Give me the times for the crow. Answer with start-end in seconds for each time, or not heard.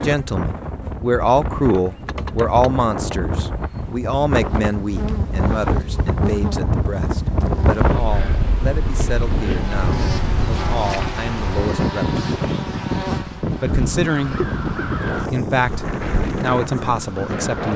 13.7-17.7.